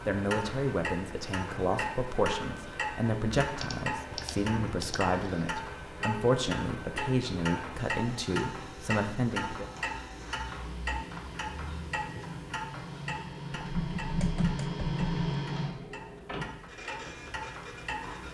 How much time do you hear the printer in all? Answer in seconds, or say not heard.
18 s.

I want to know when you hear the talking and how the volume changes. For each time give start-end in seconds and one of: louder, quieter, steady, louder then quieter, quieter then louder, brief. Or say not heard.
0.1-9.7 steady.